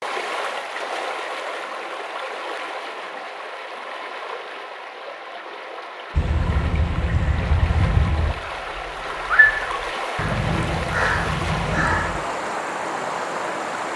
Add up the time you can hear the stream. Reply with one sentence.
You can hear the stream for 14 seconds altogether.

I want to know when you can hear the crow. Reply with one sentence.
You can hear the crow from 6.2 to 12.5 s.